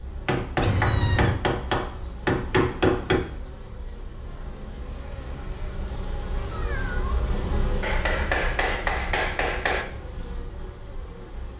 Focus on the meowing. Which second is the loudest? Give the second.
1 s.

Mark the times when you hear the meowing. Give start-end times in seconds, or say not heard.
0.6-1.4, 6.5-7.0.